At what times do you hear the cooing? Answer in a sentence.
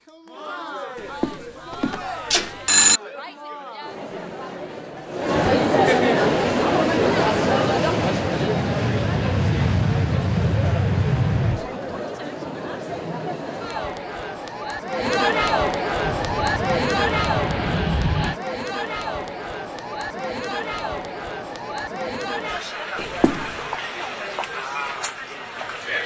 The cooing can't be heard in this clip.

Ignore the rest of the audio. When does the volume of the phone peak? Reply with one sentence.
The volume of the phone peaks at 3 seconds.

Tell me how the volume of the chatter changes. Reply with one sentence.
The loudness of the chatter goes up, then down.